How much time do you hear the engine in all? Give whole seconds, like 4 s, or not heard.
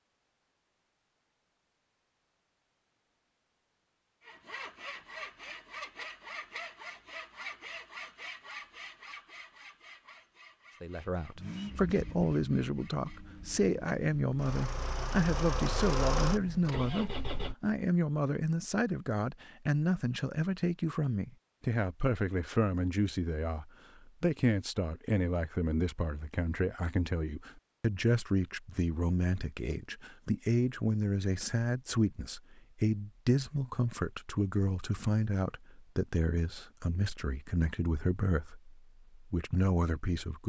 6 s.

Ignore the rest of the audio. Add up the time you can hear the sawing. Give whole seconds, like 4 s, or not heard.
9 s.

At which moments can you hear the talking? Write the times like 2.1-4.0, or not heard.
10.8-40.4.